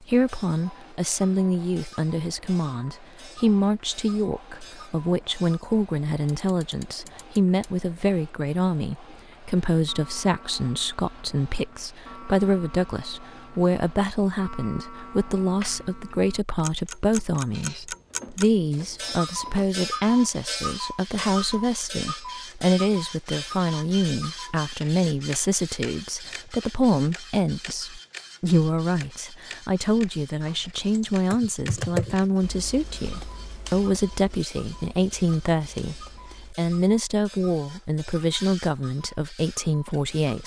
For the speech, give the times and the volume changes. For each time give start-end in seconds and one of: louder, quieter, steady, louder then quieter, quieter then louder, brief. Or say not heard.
0.0-40.4 steady.